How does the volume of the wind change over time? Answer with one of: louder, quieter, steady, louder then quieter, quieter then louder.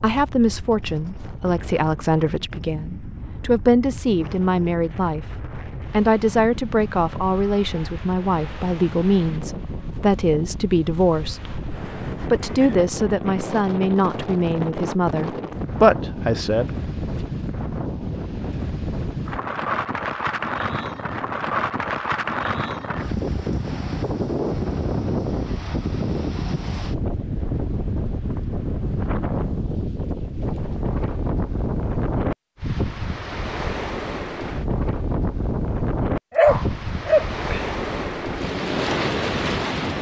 louder.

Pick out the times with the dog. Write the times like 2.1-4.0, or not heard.
36.4-37.6.